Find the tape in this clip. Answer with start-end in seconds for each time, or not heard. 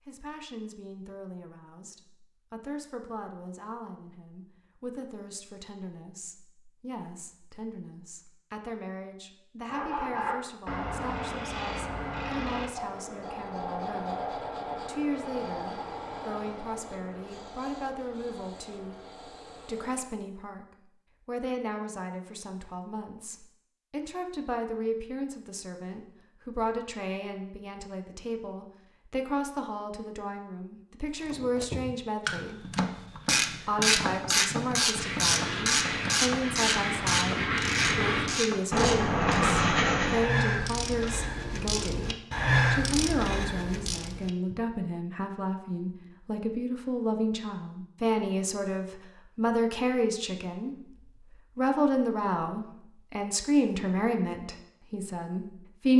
not heard.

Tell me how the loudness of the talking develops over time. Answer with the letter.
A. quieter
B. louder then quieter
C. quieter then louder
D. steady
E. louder
E.